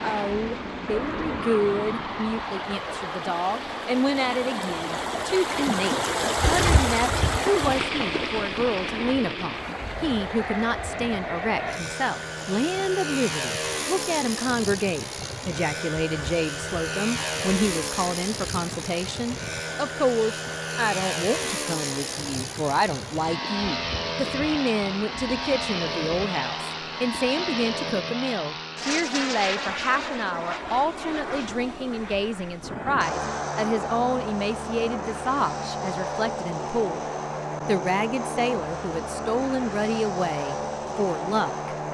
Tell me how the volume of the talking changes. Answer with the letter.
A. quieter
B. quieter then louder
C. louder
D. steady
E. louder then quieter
D.